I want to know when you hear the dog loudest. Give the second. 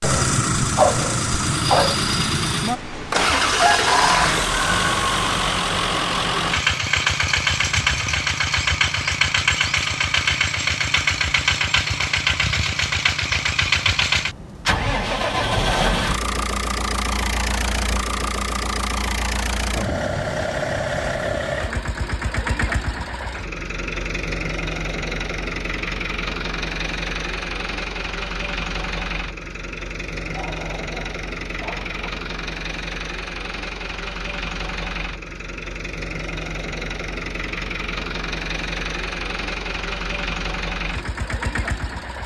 1 s.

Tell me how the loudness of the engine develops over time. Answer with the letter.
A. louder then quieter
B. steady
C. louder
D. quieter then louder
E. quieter
E.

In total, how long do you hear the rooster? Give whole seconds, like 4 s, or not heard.
2 s.